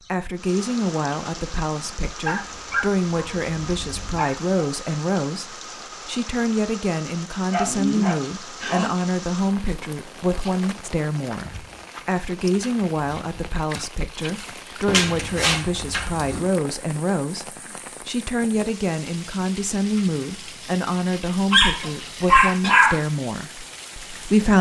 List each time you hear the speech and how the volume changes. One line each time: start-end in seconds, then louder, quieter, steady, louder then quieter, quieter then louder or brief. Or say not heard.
0.1-24.5 steady.